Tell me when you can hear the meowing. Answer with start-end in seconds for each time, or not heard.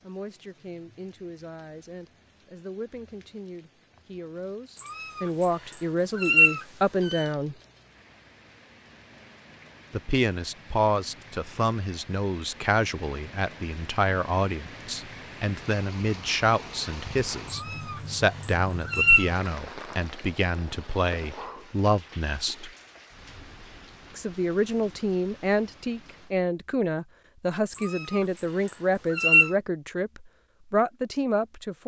4.8-7.2, 17.5-19.3, 27.7-29.5.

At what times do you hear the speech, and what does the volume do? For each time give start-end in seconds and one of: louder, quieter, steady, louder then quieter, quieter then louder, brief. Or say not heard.
0.0-7.5 louder
9.9-22.7 steady
24.1-31.8 steady.